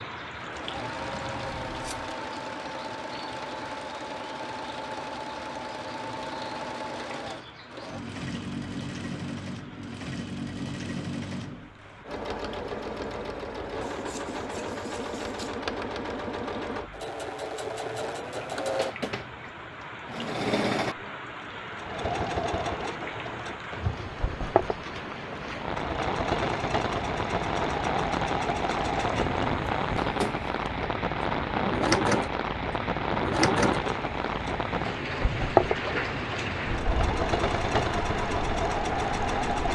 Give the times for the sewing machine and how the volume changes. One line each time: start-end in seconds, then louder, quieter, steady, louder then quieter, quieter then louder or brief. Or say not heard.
0.0-39.7 louder.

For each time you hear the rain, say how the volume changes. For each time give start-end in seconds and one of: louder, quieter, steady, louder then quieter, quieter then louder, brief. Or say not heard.
0.0-39.7 quieter then louder.